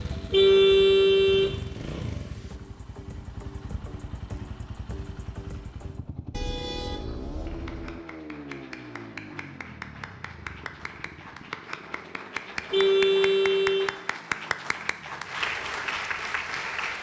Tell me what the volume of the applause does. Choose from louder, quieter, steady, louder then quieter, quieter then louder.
louder.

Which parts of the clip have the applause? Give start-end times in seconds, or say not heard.
7.5-16.9.